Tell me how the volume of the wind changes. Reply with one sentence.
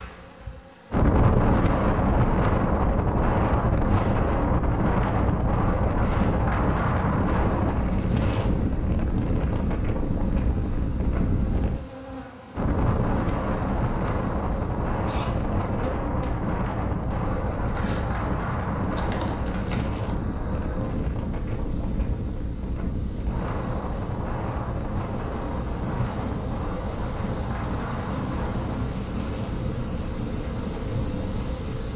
The loudness of the wind goes down.